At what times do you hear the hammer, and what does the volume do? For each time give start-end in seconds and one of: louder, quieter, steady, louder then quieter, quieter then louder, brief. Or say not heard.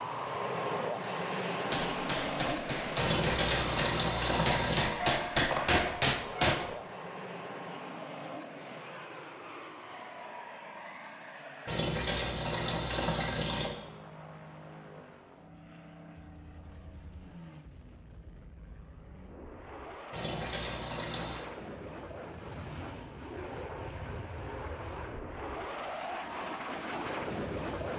1.7-6.7 louder.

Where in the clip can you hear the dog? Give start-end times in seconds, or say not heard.
5.0-6.6.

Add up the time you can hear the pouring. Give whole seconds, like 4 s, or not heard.
5 s.